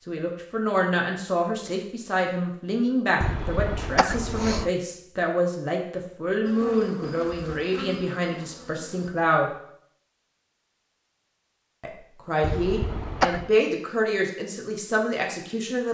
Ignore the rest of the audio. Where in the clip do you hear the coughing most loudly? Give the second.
13 s.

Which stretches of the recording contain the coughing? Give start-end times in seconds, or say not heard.
3.2-4.7, 12.4-13.5.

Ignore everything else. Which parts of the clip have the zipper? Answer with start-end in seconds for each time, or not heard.
not heard.